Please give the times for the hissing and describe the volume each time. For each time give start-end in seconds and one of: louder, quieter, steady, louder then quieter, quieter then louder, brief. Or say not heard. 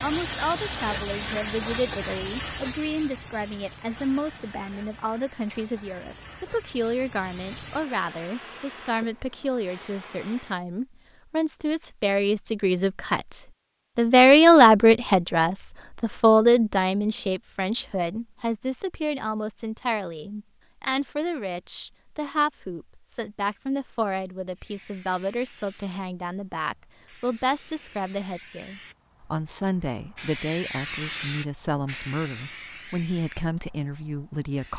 0.0-10.7 quieter then louder
24.6-34.7 louder then quieter.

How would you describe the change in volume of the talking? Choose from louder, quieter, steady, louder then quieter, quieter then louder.
louder then quieter.